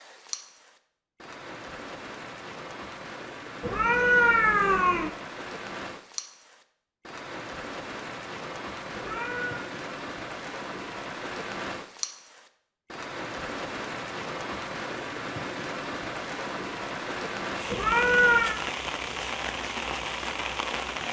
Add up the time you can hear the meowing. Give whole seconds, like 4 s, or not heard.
3 s.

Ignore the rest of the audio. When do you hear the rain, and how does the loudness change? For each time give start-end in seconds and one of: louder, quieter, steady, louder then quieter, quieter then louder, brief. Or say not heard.
0.0-21.0 louder.